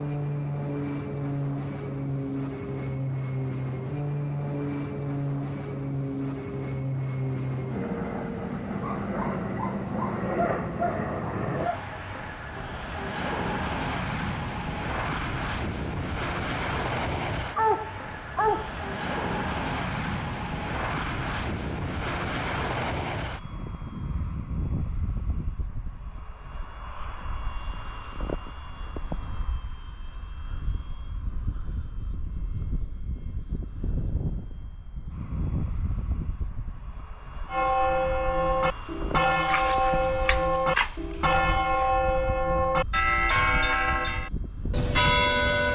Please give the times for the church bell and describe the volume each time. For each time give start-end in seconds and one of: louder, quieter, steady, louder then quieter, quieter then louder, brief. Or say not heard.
37.5-45.7 steady.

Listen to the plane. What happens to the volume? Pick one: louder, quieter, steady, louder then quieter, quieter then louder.
quieter.